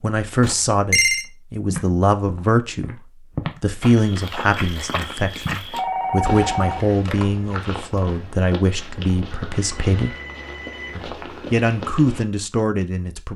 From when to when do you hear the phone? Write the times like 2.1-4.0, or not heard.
0.4-1.2, 5.7-7.2, 9.5-10.9.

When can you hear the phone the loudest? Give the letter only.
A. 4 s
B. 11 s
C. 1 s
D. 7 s
C.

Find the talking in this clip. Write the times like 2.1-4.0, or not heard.
0.0-3.0, 3.6-10.2, 10.9-13.3.